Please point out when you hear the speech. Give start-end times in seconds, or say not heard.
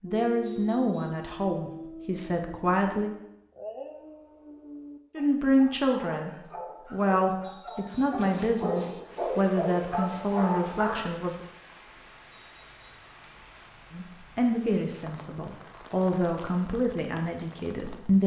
0.0-3.1, 5.2-6.3, 6.9-11.4, 13.9-18.2.